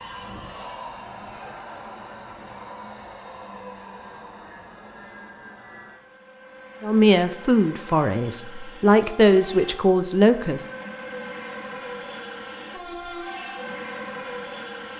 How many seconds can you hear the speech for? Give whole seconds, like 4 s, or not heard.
4 s.